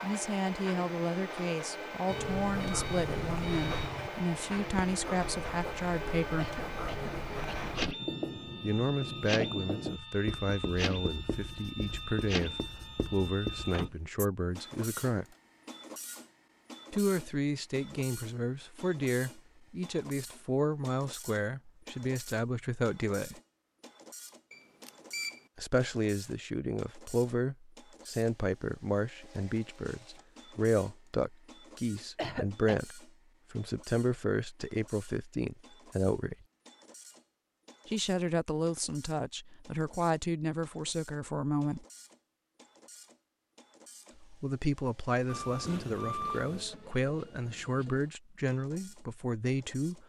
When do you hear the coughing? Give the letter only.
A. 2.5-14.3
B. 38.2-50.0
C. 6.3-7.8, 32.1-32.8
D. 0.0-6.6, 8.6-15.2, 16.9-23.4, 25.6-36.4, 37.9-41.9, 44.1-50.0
C.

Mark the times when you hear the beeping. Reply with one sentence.
You can hear the beeping from 2.0 to 4.1 s, from 24.5 to 25.4 s and from 45.2 to 46.6 s.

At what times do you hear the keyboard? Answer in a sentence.
You can't hear the keyboard here.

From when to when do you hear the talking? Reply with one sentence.
The talking can be heard from 0.0 to 6.6 s, from 8.6 to 15.2 s, from 16.9 to 23.4 s, from 25.6 to 36.4 s, from 37.9 to 41.9 s and from 44.1 to 50.0 s.